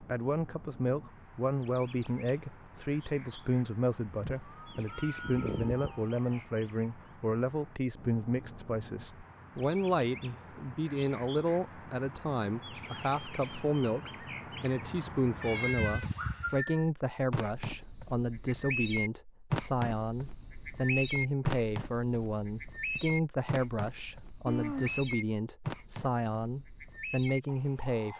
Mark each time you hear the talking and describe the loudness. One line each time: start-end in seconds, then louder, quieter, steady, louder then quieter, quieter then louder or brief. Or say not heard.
0.0-28.1 steady.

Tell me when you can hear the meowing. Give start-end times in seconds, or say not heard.
4.0-6.4, 15.3-16.6, 24.4-25.1.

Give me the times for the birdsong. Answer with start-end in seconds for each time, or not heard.
0.0-28.1.